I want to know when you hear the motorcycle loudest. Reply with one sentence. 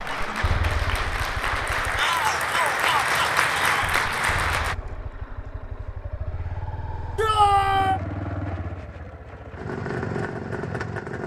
The volume of the motorcycle peaks at 10 seconds.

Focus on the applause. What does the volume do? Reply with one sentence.
The loudness of the applause goes up.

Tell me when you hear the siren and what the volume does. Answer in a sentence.
The siren can't be heard in this clip.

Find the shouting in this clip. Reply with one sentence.
The shouting can be heard from 1.9 to 4.0 s and from 7.2 to 8.0 s.